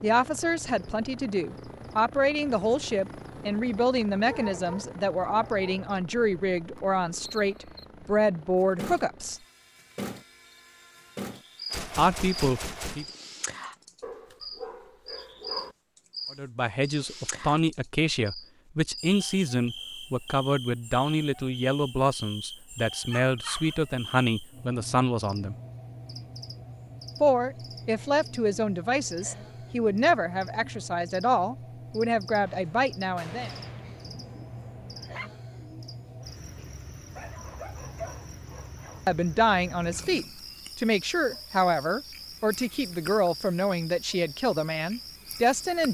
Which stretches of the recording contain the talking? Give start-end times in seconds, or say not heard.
0.0-9.4, 11.9-13.1, 16.3-25.6, 27.2-33.5, 39.0-45.9.